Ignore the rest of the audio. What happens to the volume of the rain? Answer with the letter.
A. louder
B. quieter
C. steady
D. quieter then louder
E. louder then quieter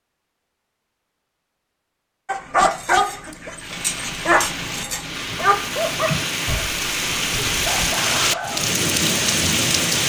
A.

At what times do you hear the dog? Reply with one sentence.
The dog can be heard from 2.2 to 8.7 s.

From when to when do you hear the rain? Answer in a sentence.
You can hear the rain from 3.5 to 10.0 s.